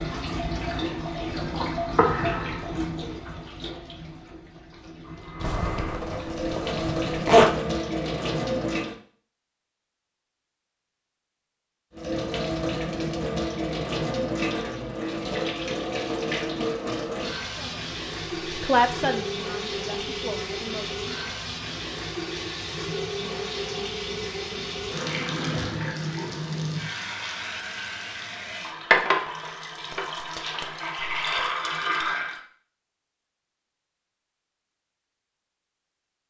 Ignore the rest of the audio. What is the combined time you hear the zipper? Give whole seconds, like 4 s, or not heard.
2 s.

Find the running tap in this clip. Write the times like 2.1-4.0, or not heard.
0.0-8.9, 11.9-32.4.